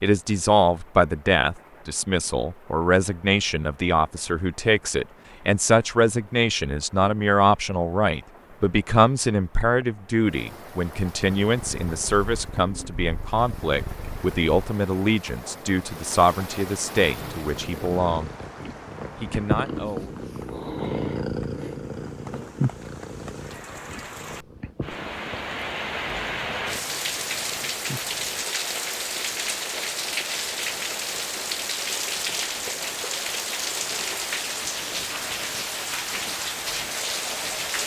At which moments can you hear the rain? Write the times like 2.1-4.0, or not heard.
0.0-37.8.